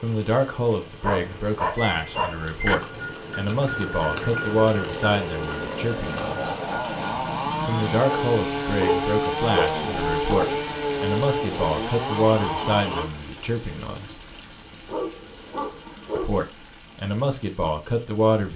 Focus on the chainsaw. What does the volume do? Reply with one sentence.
The loudness of the chainsaw goes up.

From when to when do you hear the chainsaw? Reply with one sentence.
You can hear the chainsaw from 0.0 to 13.1 s.